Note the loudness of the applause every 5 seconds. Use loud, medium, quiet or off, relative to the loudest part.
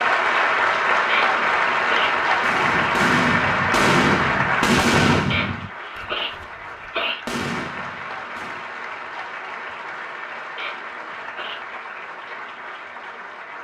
loud, quiet, quiet.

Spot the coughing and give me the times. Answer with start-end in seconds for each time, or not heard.
1.1-2.2, 5.3-7.2, 10.6-11.7.